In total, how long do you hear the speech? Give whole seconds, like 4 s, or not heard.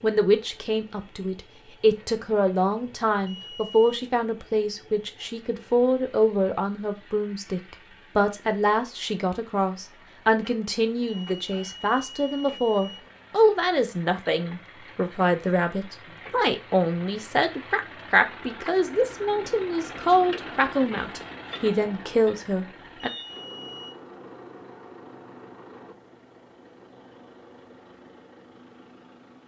23 s.